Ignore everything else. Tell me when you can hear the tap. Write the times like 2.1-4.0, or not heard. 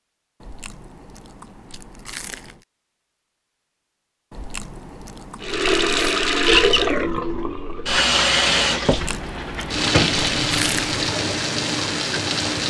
5.4-12.6.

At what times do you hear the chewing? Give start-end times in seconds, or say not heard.
0.4-2.6, 4.3-6.2, 8.8-11.0.